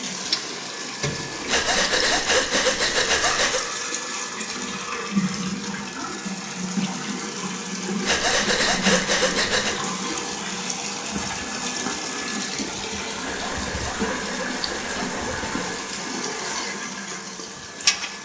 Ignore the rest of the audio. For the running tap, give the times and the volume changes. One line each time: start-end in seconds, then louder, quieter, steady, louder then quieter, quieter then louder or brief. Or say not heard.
0.0-18.2 steady.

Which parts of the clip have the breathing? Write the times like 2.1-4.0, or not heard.
1.4-3.6, 8.1-9.8, 13.2-15.7.